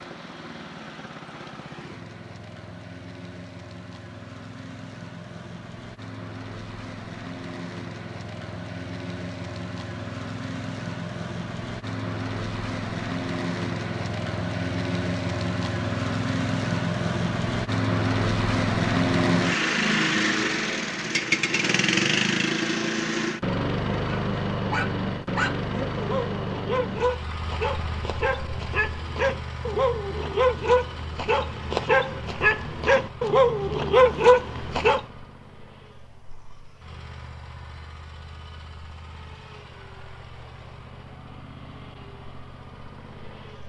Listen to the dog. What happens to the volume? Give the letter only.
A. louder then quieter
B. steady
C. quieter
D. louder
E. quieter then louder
D.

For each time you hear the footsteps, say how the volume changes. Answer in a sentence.
You can't hear the footsteps here.